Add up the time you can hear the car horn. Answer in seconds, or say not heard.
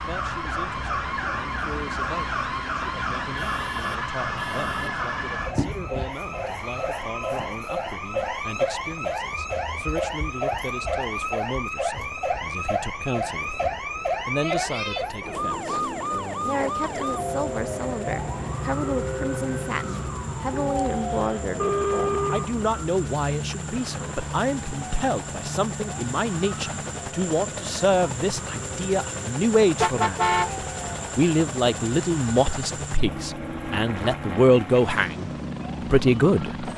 3 s.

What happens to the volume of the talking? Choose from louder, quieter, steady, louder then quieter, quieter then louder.
louder.